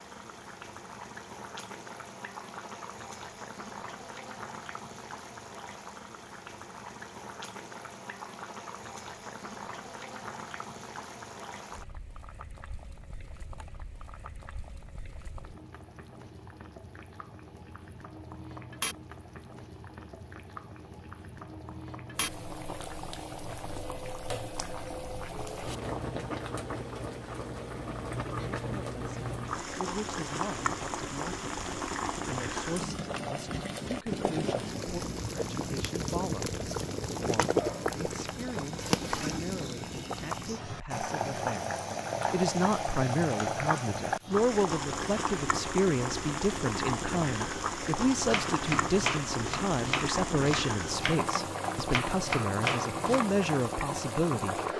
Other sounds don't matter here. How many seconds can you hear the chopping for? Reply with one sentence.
The chopping can be heard for 5 seconds in total.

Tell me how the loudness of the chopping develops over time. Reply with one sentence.
The volume of the chopping goes down, then up.